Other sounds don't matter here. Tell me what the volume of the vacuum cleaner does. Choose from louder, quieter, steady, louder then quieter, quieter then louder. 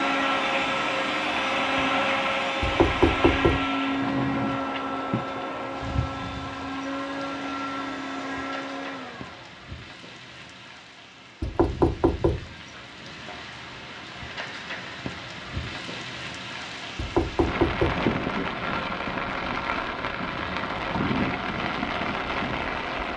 quieter.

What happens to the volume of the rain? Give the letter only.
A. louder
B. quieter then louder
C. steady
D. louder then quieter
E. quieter
B.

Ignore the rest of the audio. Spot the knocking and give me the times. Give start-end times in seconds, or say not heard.
2.6-3.6, 11.4-12.4, 16.9-18.0.